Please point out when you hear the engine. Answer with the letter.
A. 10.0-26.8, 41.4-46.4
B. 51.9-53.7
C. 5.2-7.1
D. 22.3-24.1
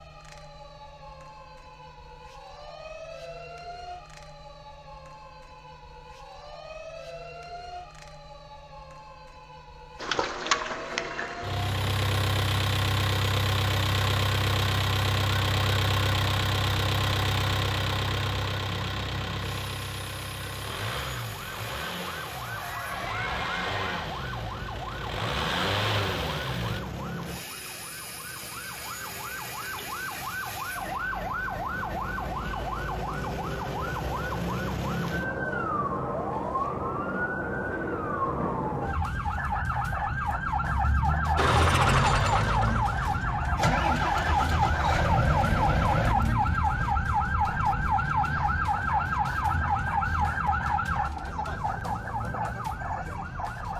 A.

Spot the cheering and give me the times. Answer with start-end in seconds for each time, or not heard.
22.3-24.1.